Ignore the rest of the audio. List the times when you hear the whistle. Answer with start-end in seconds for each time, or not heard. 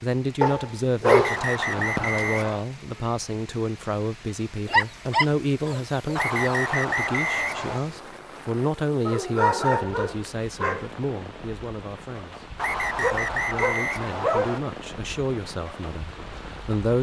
1.0-2.6, 6.2-7.8, 12.6-14.6.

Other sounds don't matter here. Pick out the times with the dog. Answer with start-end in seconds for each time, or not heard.
0.4-2.2, 4.7-6.2, 9.1-10.9, 13.0-14.6.